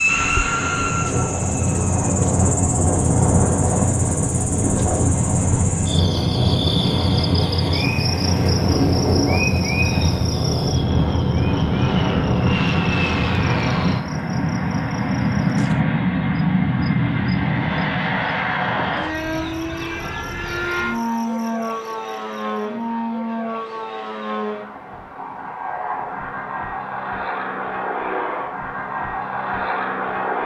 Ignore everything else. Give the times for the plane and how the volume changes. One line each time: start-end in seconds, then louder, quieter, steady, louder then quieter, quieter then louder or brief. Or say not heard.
0.0-30.4 quieter.